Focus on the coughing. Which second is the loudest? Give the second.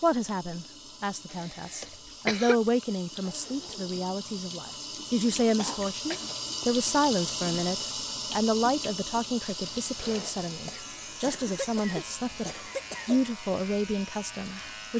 2 s.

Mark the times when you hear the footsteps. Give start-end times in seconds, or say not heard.
not heard.